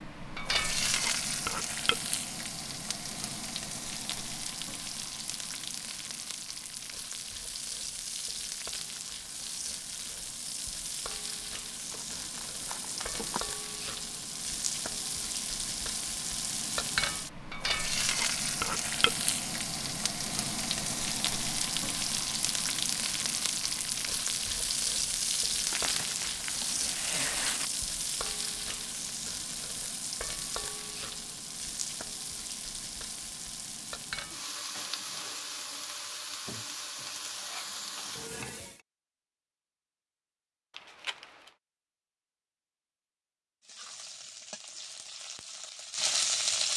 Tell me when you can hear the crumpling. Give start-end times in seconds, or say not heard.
11.9-13.4, 25.6-27.7, 40.7-41.5.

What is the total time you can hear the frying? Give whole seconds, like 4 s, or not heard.
42 s.